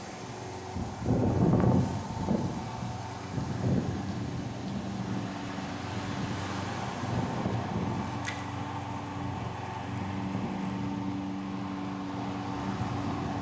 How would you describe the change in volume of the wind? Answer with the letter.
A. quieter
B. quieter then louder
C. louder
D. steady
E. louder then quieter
A.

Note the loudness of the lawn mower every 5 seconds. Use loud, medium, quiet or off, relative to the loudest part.
medium, loud, loud.